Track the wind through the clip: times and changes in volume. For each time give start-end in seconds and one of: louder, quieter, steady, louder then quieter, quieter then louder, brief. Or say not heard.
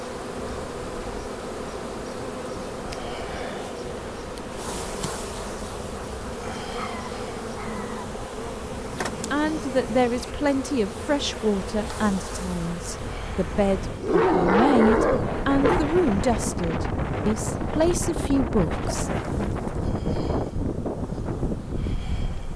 0.0-22.5 louder.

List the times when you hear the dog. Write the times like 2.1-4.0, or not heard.
6.8-8.1, 14.0-15.9.